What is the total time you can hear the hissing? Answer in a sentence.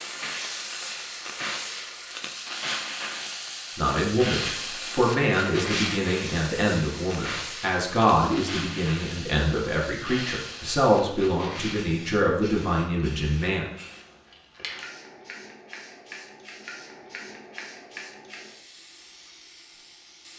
The hissing can be heard for 20 seconds in total.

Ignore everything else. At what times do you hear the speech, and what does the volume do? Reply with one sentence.
You can hear the speech from 3.8 to 13.7 s, at a steady volume.